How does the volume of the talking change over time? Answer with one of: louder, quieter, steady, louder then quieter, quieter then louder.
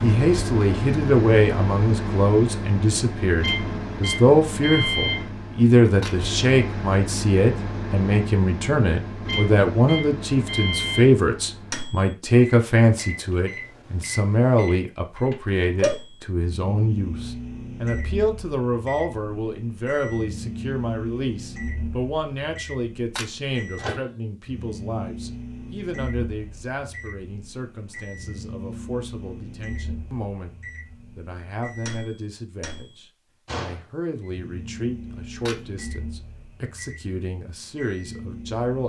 quieter.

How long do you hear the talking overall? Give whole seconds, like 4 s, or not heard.
39 s.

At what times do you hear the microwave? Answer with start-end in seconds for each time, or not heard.
0.0-38.8.